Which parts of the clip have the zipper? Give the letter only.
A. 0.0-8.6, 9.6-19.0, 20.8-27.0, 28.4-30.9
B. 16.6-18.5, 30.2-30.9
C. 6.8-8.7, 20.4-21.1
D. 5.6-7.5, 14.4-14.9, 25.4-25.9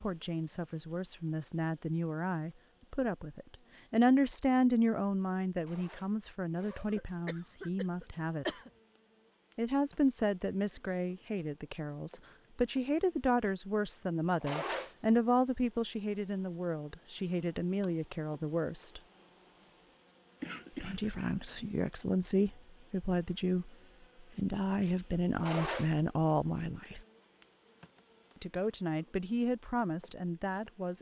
D.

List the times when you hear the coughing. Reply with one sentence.
The coughing can be heard from 6.8 to 8.7 s and from 20.4 to 21.1 s.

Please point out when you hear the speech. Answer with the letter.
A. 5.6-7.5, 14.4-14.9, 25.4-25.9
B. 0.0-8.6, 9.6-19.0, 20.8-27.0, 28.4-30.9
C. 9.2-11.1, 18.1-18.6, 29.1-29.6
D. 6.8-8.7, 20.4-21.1
B.